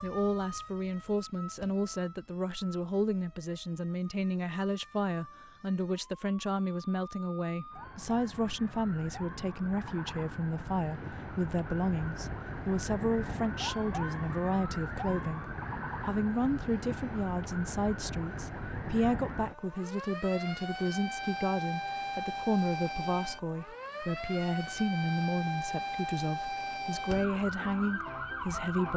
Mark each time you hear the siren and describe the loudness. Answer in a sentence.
The siren can be heard from 0.0 to 28.9 s, getting louder.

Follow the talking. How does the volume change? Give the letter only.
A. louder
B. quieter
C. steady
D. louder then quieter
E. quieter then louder
C.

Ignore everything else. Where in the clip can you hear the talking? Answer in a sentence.
The talking can be heard from 0.0 to 28.9 s.